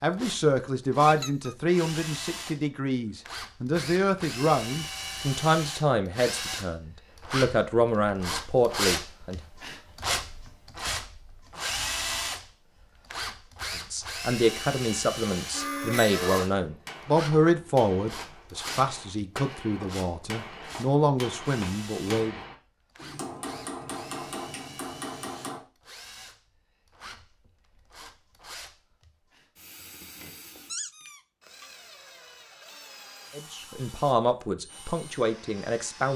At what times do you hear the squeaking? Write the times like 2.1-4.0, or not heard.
1.1-1.6, 15.5-16.5, 30.6-31.7.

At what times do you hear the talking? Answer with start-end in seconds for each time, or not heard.
0.0-9.4, 13.9-22.4, 33.4-36.1.